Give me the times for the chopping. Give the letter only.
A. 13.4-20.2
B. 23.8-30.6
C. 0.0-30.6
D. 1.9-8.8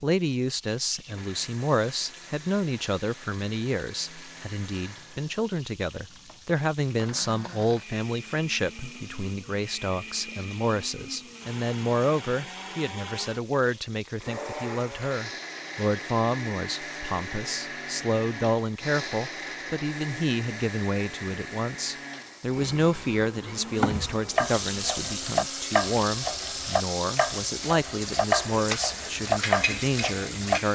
B.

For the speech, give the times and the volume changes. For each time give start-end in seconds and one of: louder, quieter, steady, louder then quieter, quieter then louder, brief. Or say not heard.
0.0-30.6 steady.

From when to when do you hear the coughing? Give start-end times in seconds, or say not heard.
not heard.